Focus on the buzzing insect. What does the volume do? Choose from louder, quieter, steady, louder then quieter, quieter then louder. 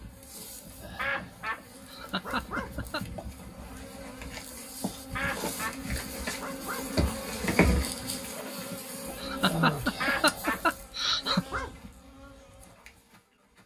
louder then quieter.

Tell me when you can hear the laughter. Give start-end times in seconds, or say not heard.
1.9-3.0, 9.2-11.4.